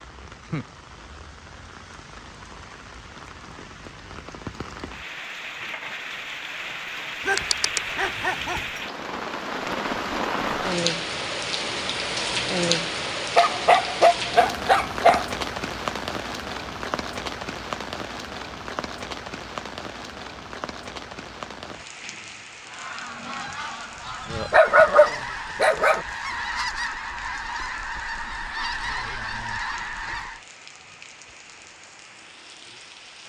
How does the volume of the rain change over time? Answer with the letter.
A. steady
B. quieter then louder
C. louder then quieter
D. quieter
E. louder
C.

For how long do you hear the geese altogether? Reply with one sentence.
You can hear the geese for 8 seconds altogether.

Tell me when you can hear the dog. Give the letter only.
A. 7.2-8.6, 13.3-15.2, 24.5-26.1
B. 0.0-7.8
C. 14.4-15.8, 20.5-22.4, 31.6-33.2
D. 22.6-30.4
A.